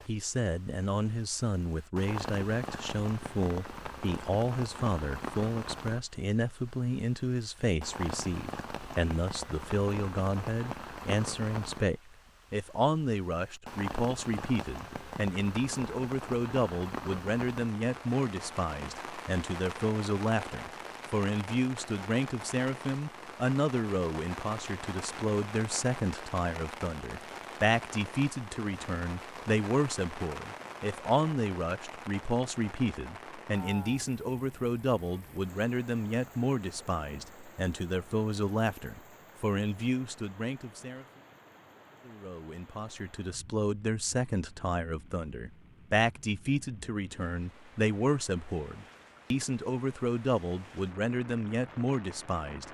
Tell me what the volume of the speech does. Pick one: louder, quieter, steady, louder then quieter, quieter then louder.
steady.